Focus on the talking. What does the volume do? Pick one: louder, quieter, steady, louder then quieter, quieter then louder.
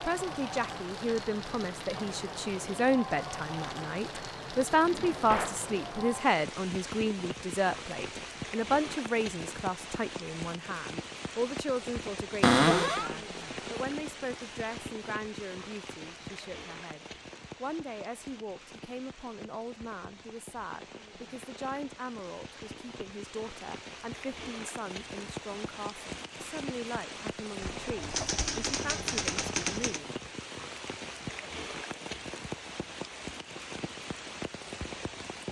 quieter.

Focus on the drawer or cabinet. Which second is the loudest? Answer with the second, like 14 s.
13 s.